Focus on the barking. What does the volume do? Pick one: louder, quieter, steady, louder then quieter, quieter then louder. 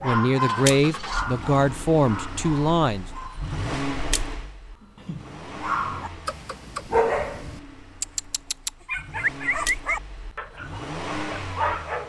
quieter then louder.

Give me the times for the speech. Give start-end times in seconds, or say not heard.
0.0-3.0.